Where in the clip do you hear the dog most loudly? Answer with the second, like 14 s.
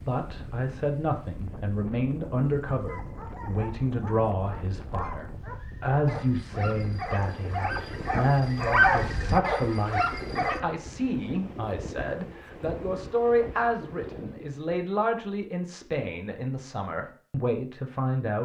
9 s.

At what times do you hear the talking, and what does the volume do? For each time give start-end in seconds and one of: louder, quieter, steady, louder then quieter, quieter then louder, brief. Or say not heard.
0.0-18.4 steady.